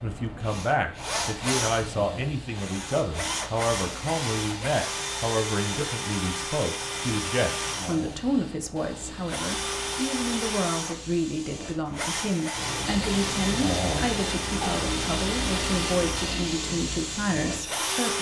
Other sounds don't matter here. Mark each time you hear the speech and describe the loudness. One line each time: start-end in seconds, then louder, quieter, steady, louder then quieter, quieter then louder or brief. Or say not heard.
0.0-18.1 steady.